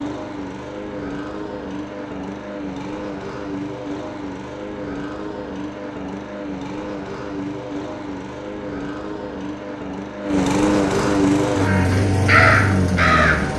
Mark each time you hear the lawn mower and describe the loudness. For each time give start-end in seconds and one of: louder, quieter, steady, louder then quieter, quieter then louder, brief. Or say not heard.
0.0-13.5 louder.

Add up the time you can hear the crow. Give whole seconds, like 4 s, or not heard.
2 s.